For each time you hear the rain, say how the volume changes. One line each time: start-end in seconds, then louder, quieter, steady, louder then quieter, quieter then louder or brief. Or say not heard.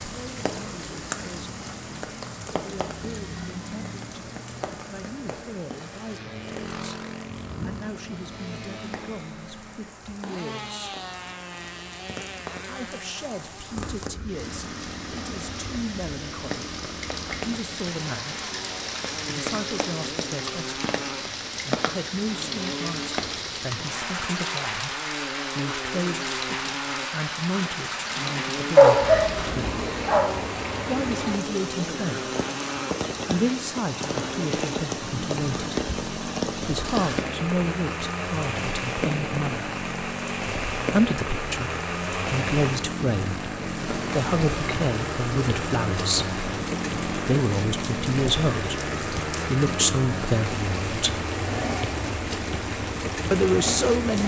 0.0-54.2 louder.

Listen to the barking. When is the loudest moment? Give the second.
29 s.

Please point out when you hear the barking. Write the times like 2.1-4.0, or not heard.
28.8-30.2.